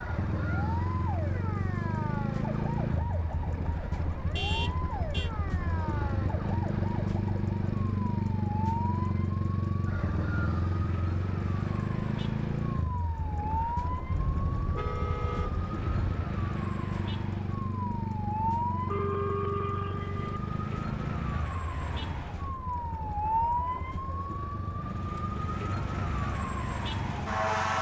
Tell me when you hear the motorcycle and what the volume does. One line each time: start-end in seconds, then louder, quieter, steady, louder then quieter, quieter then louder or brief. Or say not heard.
0.0-27.7 quieter.